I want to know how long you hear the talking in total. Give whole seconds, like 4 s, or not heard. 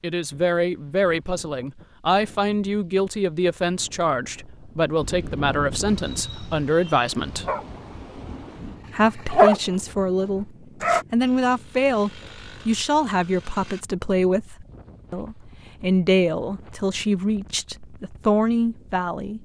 17 s.